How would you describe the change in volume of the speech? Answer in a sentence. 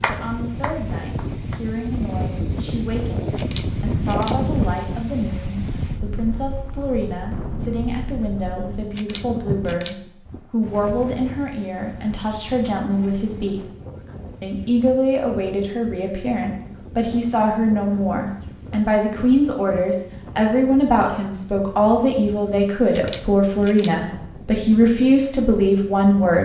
The volume of the speech goes up.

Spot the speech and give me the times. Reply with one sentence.
You can hear the speech from 0.1 to 13.7 s and from 14.4 to 26.3 s.